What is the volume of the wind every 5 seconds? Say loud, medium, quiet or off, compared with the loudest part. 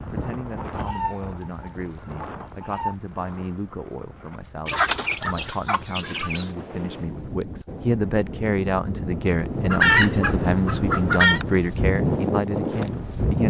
quiet, medium, loud.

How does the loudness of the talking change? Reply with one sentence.
The loudness of the talking goes up.